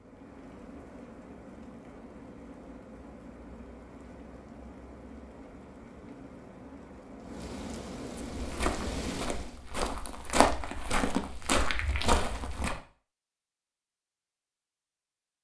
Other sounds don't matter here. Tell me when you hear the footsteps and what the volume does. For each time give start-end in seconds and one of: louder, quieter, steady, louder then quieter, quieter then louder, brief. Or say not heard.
8.3-12.8 louder.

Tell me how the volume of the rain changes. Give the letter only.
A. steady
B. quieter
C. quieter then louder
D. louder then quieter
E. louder
E.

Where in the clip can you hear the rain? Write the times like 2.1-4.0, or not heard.
0.0-9.7.